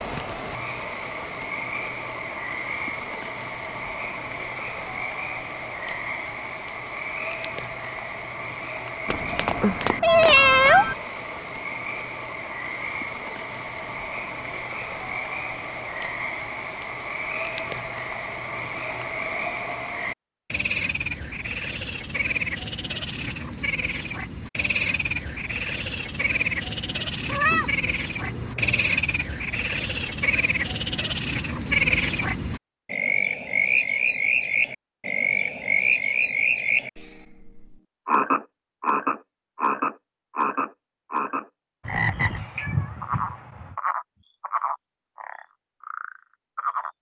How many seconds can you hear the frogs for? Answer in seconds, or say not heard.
47 s.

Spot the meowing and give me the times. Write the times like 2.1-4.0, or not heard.
9.1-10.9, 27.2-28.9, 41.9-43.8.